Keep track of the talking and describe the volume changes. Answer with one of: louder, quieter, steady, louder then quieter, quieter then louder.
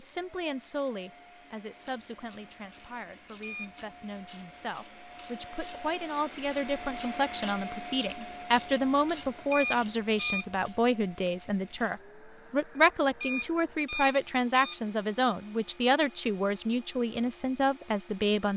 louder.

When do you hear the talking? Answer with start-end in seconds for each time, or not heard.
0.0-18.5.